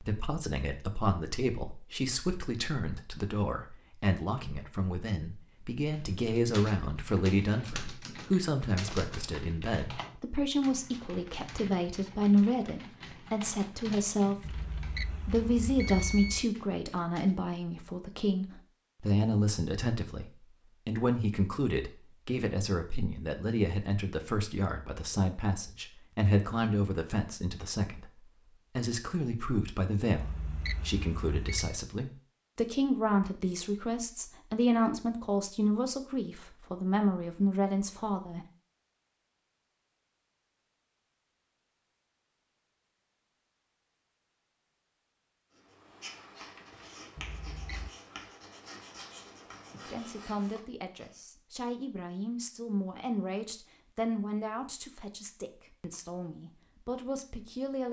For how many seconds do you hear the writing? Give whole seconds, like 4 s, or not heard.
6 s.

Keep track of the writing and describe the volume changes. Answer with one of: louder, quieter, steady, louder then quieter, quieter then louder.
steady.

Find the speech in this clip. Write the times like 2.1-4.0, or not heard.
0.0-38.5, 49.9-57.8.